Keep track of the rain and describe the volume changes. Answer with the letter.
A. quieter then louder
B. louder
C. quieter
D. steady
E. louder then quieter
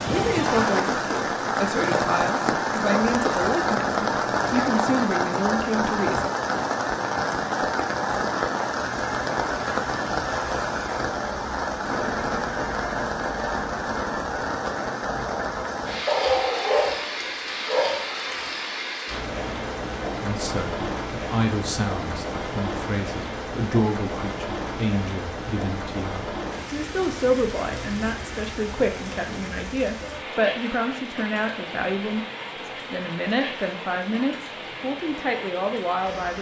C.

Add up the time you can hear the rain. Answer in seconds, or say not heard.
36 s.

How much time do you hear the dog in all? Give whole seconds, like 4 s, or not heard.
2 s.